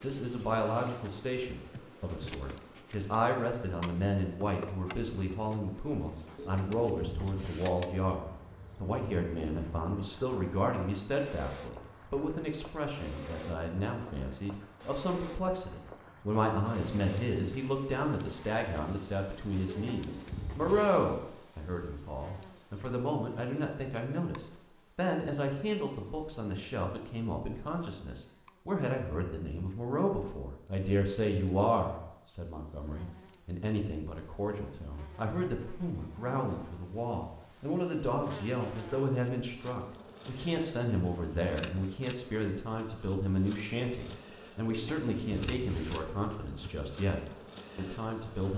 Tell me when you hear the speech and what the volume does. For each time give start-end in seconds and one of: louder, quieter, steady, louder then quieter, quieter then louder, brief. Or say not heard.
0.0-48.5 steady.